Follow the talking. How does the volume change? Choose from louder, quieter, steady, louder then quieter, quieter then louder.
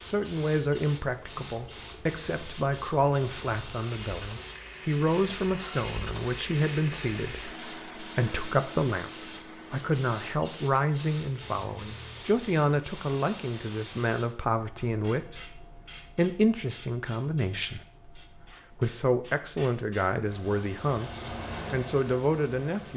steady.